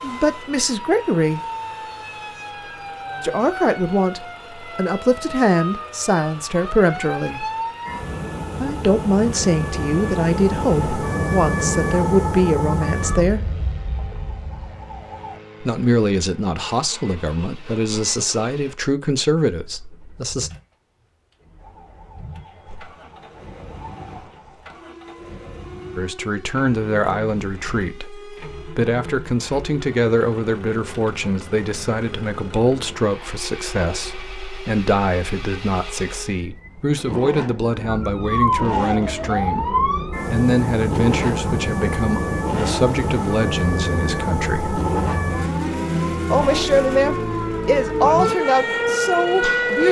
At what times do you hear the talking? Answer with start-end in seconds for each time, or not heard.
0.0-1.4, 3.2-7.5, 8.6-13.4, 15.6-20.5, 25.9-44.8, 46.3-49.8.